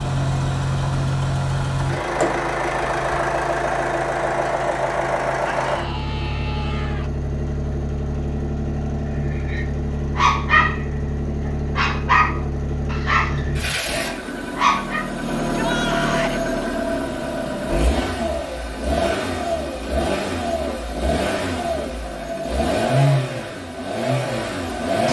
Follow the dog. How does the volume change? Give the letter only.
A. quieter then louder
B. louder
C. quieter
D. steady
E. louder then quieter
C.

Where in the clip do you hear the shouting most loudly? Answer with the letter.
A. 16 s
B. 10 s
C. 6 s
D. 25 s
A.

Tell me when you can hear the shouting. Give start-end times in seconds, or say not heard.
5.4-7.1, 15.5-16.4.